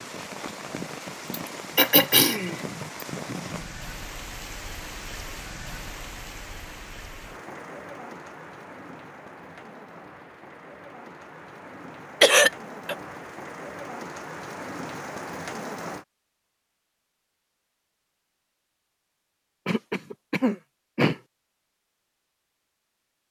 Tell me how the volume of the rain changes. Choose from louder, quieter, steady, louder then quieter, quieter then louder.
quieter then louder.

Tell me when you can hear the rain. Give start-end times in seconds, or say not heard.
0.0-16.1.